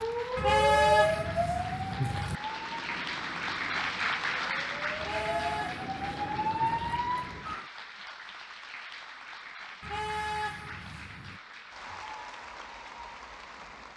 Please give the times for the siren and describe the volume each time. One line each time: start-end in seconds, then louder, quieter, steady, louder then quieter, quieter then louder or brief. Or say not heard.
0.0-7.7 quieter then louder.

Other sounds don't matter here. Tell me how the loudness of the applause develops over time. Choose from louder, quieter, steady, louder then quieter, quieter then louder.
louder then quieter.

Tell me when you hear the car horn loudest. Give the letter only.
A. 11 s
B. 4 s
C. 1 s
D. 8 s
C.